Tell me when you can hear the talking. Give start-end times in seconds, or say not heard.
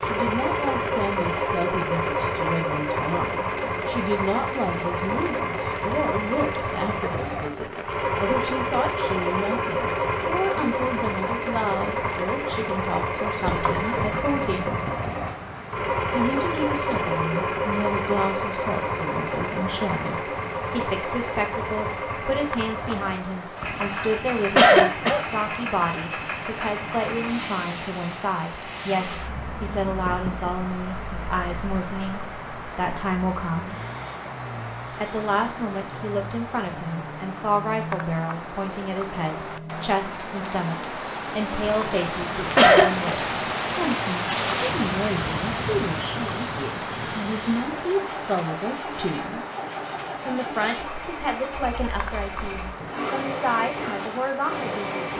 0.0-14.7, 16.1-33.8, 34.9-49.5, 50.2-55.0.